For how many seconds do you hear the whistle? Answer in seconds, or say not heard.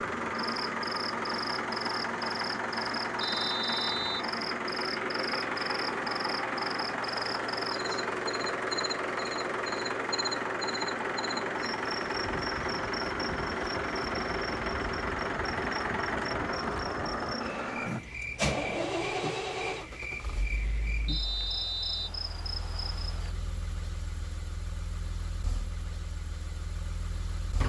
2 s.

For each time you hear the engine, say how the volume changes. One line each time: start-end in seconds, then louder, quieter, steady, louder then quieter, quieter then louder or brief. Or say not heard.
0.0-27.6 quieter.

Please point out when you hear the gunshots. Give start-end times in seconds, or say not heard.
not heard.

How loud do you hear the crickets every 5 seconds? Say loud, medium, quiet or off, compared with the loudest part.
loud, loud, loud, loud, loud, off.